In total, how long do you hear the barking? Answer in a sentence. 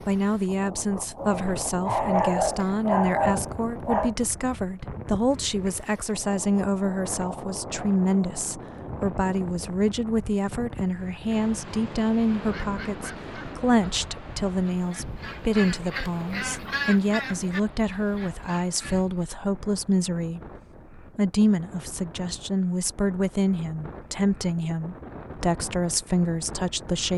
You can hear the barking for 3 seconds altogether.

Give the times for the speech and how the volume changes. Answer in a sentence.
You can hear the speech from 0.1 to 27.1 s, at a steady volume.